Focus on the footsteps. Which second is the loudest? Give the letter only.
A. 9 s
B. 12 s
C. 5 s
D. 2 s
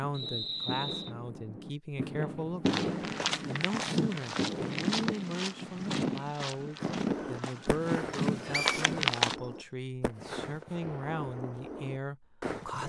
A.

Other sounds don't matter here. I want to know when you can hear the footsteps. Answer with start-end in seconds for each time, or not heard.
2.6-9.3.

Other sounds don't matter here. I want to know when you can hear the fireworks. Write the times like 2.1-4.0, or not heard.
0.0-5.0, 6.8-12.8.